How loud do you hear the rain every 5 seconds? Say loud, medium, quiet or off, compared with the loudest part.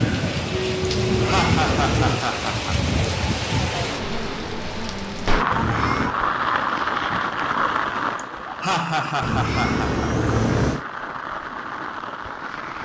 loud, loud, medium.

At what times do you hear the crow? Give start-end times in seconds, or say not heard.
not heard.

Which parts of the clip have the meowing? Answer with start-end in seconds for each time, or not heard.
1.0-2.2, 5.5-6.2, 9.2-10.8.